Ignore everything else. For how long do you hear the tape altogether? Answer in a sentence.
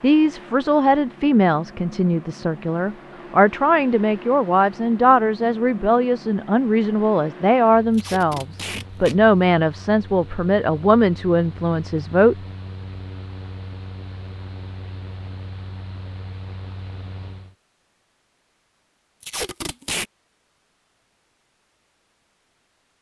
You can hear the tape for 2 seconds altogether.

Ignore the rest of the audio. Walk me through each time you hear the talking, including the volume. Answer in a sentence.
You can hear the talking from 0.0 to 12.3 s, at a steady volume.